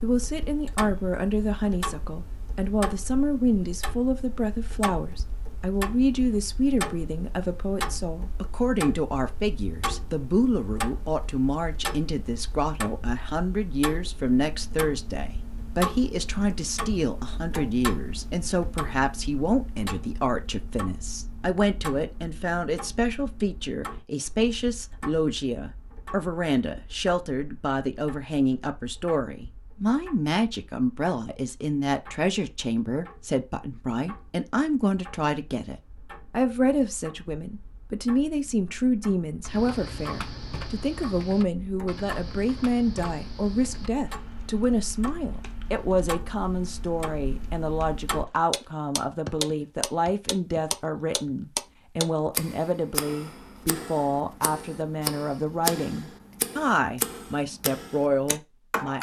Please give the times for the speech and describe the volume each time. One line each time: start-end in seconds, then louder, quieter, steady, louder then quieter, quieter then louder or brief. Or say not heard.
0.0-58.9 steady.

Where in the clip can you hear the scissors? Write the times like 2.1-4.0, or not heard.
not heard.